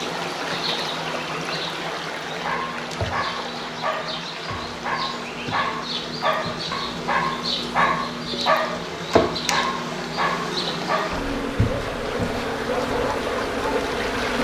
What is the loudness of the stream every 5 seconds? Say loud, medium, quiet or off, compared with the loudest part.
loud, medium, loud.